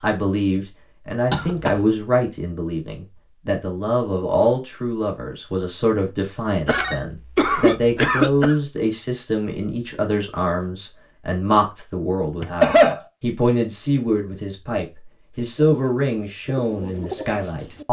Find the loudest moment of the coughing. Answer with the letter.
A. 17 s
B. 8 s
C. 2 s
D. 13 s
D.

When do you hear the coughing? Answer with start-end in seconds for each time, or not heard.
1.3-1.8, 6.7-8.6, 12.4-13.0.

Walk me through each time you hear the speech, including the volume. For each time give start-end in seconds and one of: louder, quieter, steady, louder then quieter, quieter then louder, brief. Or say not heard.
0.0-17.8 steady.